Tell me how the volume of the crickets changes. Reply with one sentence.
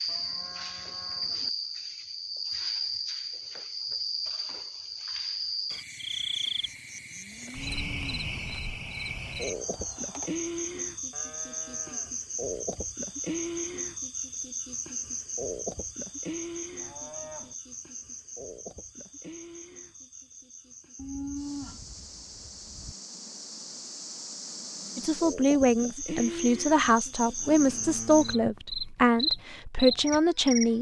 The loudness of the crickets goes down, then up.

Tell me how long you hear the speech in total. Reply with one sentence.
You can hear the speech for 6 seconds altogether.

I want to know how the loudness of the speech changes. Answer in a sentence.
The loudness of the speech stays about the same.